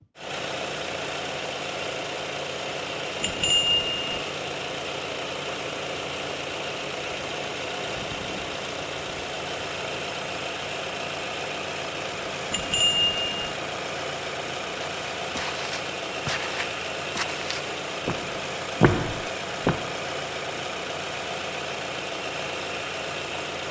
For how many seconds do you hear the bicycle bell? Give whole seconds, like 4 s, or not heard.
2 s.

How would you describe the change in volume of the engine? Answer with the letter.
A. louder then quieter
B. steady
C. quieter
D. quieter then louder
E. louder
B.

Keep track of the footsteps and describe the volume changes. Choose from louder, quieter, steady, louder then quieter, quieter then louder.
louder.